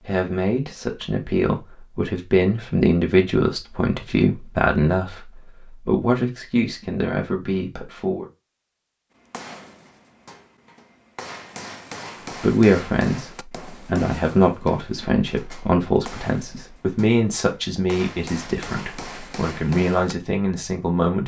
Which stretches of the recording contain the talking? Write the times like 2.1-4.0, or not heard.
0.0-8.2, 12.4-21.2.